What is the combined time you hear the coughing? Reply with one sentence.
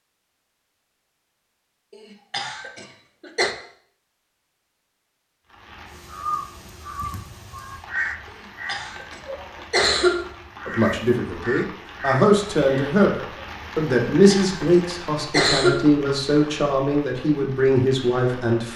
You can hear the coughing for 5 seconds altogether.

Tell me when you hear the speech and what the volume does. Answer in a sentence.
You can hear the speech from 10.7 to 18.7 s, at a steady volume.